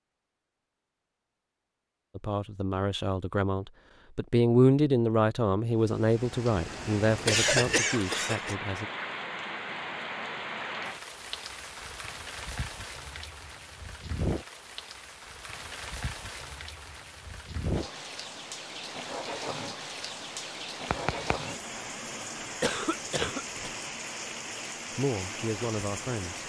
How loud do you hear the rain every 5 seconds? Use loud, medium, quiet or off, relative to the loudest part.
off, loud, loud, loud, loud, loud.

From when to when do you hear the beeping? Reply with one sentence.
The beeping can be heard from 20.9 to 21.6 s.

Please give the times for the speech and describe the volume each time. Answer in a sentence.
The speech can be heard from 2.1 to 8.9 s, getting louder then quieter; and briefly from 24.9 to 26.4 s.